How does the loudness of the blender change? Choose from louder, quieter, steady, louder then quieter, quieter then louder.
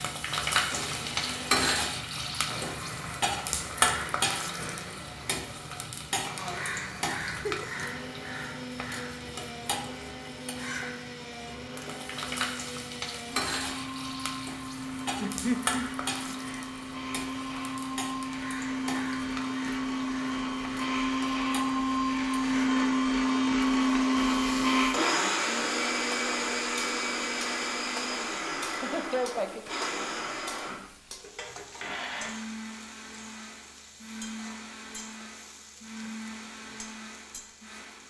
louder then quieter.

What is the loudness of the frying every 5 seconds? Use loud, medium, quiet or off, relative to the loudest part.
loud, medium, medium, medium, quiet, quiet, quiet, quiet.